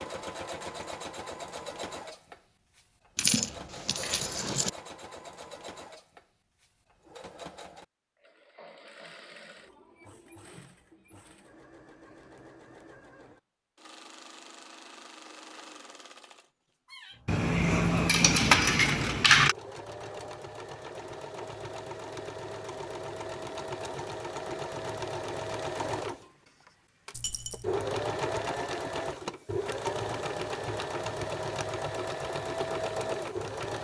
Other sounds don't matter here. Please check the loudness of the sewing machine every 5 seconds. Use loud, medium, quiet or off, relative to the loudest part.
medium, quiet, quiet, quiet, medium, loud, loud.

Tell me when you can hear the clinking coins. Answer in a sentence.
You can hear the clinking coins from 3.1 to 4.7 s, from 17.2 to 19.6 s and from 27.1 to 27.6 s.